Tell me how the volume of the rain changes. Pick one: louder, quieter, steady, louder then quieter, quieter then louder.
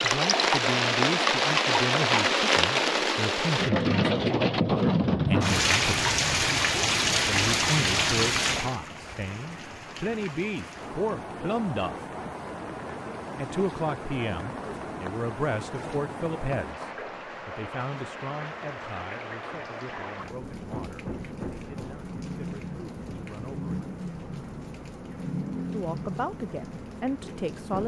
quieter.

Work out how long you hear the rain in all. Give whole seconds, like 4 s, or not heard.
28 s.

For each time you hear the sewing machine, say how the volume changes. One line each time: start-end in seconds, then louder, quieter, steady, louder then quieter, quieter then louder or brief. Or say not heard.
not heard.